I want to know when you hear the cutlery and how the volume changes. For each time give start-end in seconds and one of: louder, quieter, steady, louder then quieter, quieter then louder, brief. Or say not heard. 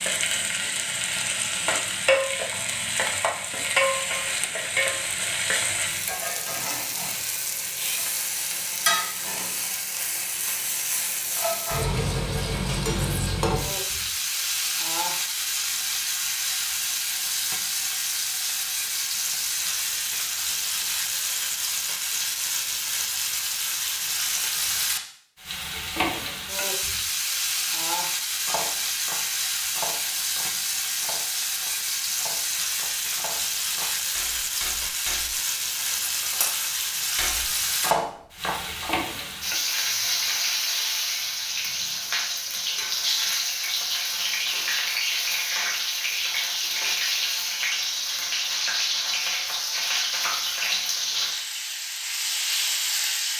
28.4-39.0 quieter then louder.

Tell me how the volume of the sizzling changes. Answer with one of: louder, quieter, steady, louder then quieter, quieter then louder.
steady.